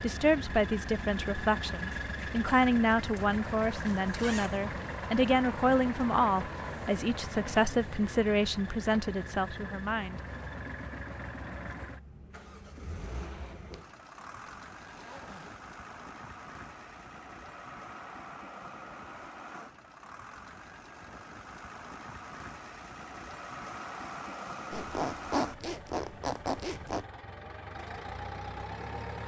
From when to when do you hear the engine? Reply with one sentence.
The engine can be heard from 0.0 to 29.2 s.